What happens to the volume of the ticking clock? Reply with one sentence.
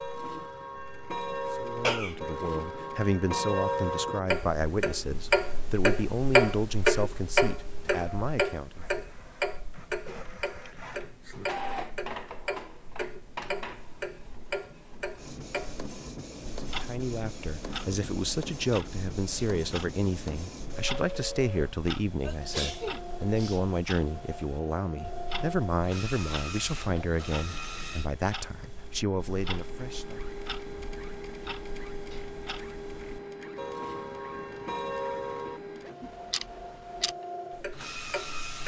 The loudness of the ticking clock goes down, then up.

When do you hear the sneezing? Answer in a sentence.
You can hear the sneezing from 1.8 to 2.2 s and from 22.2 to 23.8 s.